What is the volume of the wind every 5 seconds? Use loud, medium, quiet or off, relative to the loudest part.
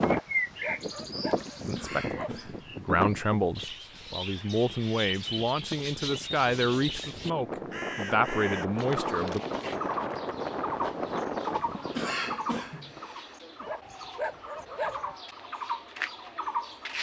loud, loud, loud, off.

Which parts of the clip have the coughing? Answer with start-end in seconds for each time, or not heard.
1.8-2.7, 11.9-12.9.